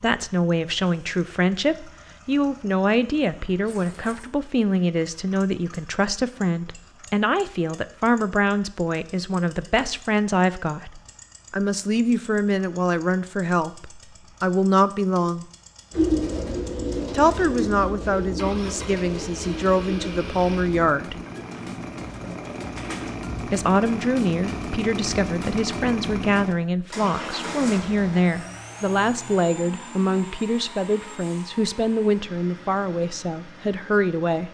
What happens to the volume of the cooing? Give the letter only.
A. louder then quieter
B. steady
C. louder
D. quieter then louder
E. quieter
E.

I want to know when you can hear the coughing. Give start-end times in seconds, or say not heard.
not heard.